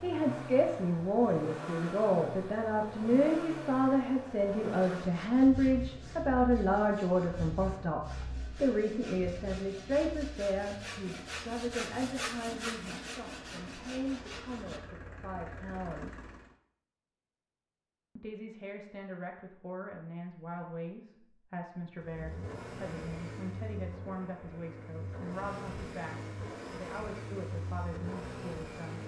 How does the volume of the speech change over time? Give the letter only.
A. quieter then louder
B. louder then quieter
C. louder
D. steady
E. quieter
E.